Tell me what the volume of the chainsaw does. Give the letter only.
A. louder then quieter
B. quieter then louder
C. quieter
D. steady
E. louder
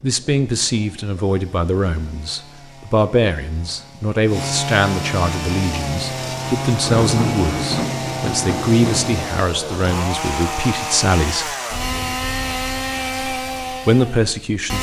E.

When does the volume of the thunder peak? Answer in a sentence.
The volume of the thunder peaks at 7 seconds.